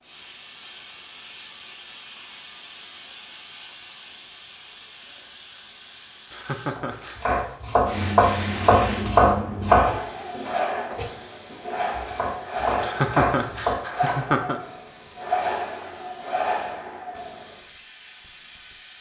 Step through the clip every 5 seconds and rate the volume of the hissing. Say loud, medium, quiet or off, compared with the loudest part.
medium, loud, loud, loud.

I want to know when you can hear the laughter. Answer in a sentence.
The laughter can be heard from 6.3 to 7.2 s and from 12.8 to 14.6 s.